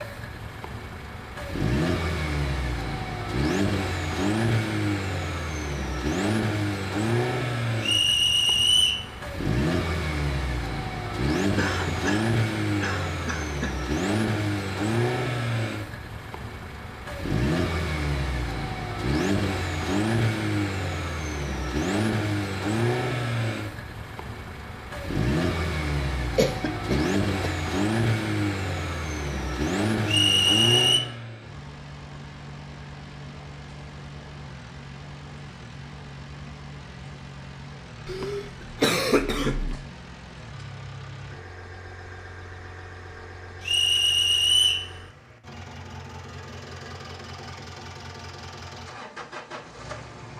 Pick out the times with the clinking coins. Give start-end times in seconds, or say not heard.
not heard.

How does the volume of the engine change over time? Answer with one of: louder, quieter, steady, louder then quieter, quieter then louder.
quieter.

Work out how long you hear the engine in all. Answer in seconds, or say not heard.
50 s.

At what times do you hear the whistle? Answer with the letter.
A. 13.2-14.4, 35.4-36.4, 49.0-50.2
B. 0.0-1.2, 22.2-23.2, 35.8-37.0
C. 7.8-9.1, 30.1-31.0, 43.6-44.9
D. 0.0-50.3
C.